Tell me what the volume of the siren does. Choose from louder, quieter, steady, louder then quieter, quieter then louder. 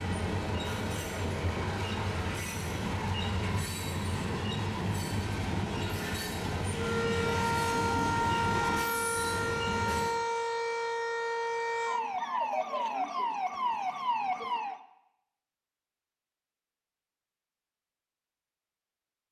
steady.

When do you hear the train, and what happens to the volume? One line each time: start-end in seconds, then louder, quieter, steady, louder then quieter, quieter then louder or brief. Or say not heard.
0.0-10.2 steady.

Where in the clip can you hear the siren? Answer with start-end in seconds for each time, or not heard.
6.7-14.8.